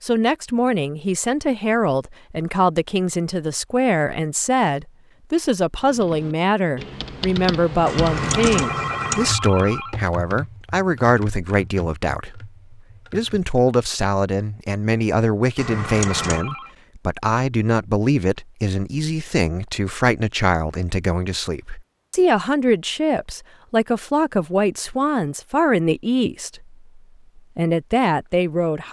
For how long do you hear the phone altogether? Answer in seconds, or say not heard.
2 s.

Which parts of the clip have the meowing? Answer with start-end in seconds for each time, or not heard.
7.8-9.3, 15.6-16.4.